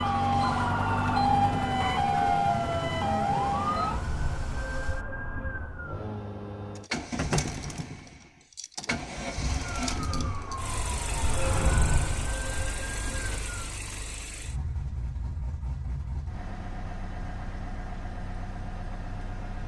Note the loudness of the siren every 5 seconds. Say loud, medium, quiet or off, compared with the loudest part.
loud, quiet, medium, off.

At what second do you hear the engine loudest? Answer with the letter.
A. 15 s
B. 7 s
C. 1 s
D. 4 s
B.